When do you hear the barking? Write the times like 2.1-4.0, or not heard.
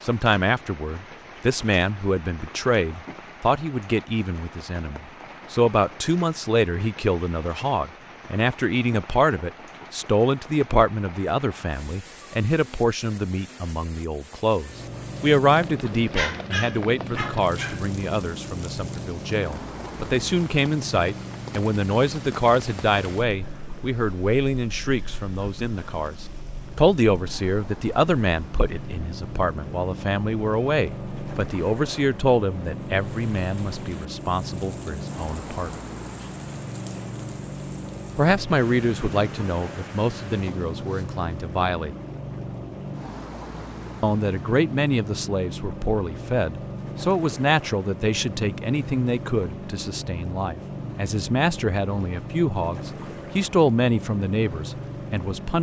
16.1-17.9.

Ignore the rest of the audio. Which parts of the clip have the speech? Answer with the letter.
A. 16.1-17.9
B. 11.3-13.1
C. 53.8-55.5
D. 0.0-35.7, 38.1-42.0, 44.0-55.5
D.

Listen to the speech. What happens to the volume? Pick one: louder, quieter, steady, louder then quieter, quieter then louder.
steady.